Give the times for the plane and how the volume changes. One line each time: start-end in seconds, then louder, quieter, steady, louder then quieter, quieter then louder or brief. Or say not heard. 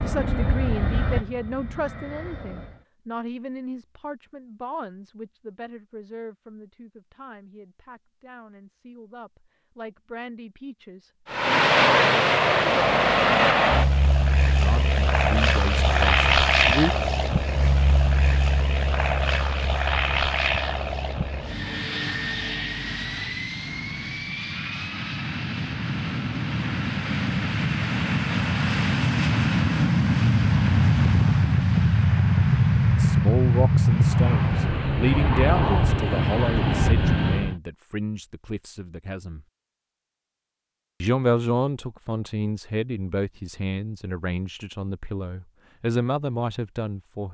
0.0-2.9 brief
11.2-37.5 quieter then louder.